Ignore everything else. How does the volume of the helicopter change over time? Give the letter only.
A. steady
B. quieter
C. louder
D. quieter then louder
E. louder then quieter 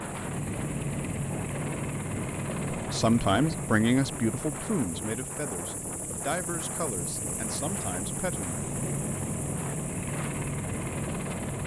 D.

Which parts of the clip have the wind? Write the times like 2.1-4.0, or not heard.
0.0-11.6.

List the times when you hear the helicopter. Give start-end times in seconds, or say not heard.
0.0-11.6.